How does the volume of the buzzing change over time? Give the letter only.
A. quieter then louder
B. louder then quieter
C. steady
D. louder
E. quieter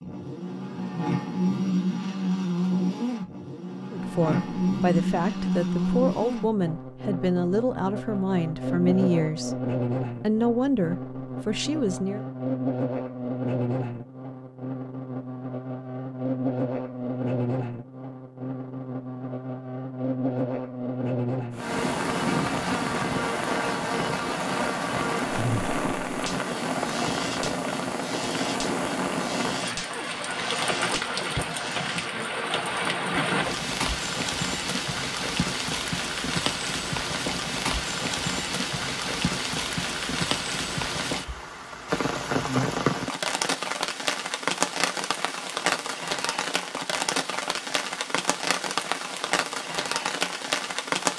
E.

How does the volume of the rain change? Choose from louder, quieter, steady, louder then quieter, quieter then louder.
steady.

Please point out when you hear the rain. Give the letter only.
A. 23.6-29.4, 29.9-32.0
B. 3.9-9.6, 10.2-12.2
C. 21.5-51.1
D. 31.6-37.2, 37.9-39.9
C.